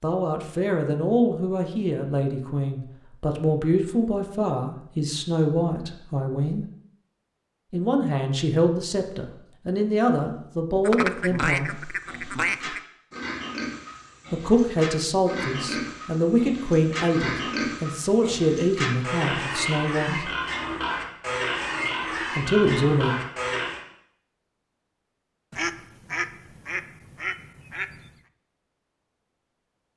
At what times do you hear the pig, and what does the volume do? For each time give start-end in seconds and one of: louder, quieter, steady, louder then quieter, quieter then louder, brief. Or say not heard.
11.7-23.8 louder.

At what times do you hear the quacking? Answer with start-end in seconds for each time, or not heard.
10.8-12.8, 25.5-28.1.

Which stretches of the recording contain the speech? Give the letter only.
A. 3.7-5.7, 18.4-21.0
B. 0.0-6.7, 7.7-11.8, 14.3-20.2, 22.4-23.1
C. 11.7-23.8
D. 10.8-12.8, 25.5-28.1
B.